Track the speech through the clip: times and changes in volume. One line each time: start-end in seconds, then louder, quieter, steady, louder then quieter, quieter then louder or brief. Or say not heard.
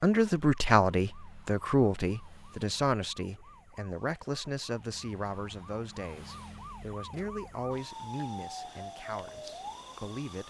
0.0-10.4 quieter.